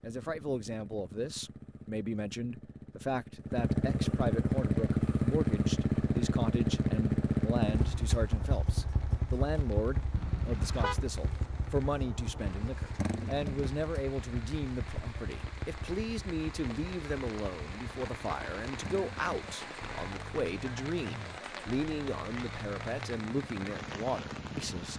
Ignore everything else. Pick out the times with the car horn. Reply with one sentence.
You can hear the car horn from 10.2 to 11.0 s.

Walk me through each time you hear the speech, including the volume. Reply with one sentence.
You can hear the speech from 0.0 to 24.9 s, at a steady volume.